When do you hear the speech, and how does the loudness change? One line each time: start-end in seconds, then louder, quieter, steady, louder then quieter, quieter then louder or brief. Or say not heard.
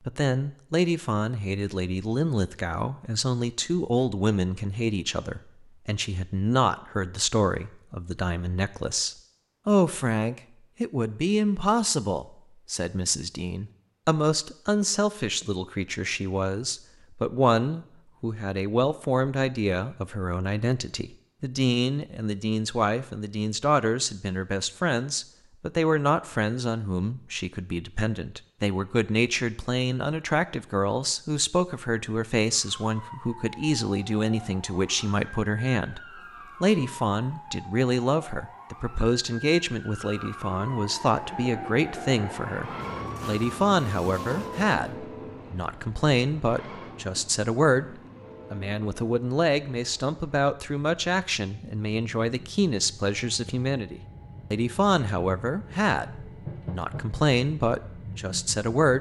0.1-36.0 steady
36.6-58.9 steady.